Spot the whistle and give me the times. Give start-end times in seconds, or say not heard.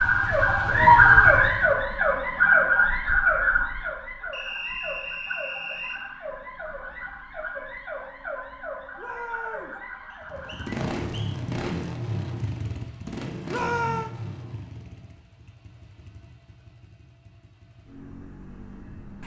4.3-6.0, 10.1-11.4.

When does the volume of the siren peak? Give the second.
1 s.